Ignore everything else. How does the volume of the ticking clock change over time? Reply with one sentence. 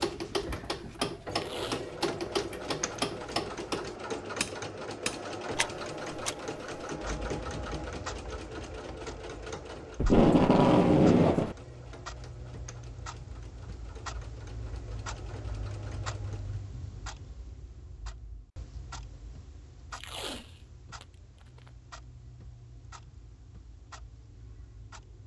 The volume of the ticking clock goes down.